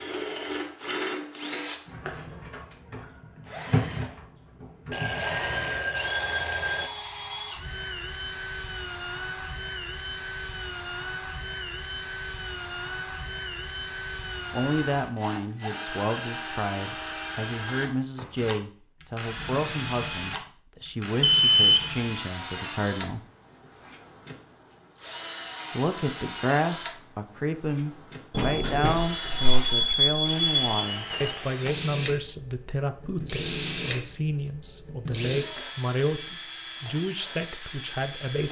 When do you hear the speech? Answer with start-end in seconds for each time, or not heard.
14.5-23.2, 25.8-38.4.